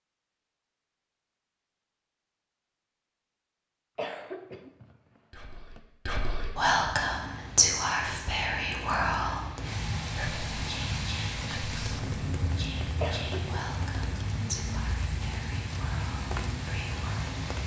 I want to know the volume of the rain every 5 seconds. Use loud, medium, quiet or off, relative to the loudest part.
off, medium, loud, loud.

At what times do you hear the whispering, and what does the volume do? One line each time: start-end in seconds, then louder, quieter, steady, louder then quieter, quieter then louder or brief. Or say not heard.
5.3-17.3 quieter.